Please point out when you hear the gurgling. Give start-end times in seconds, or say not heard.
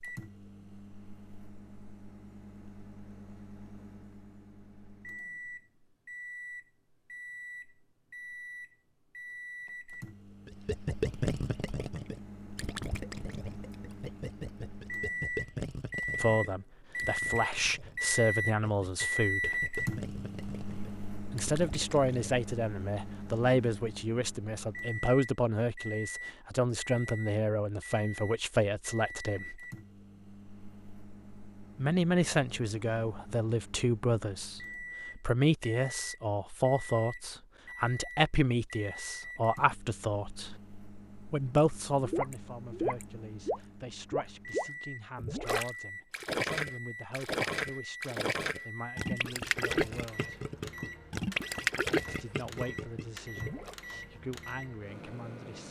10.4-22.4, 42.0-53.8.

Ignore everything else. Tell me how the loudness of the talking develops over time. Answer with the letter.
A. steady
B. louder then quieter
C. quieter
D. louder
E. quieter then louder
C.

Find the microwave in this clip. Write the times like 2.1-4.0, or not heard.
0.0-55.6.